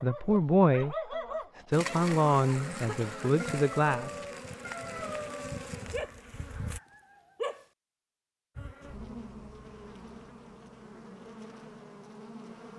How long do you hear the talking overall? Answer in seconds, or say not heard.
4 s.